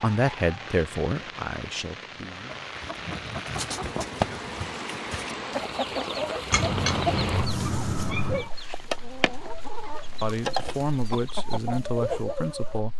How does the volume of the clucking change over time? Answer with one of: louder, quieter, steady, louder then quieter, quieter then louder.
steady.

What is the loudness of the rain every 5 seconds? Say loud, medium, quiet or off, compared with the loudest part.
loud, loud, quiet.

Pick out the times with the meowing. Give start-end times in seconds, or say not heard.
6.5-8.5.